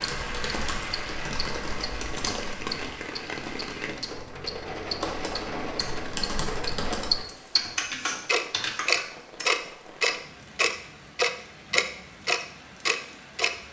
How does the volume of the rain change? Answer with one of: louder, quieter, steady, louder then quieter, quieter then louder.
quieter.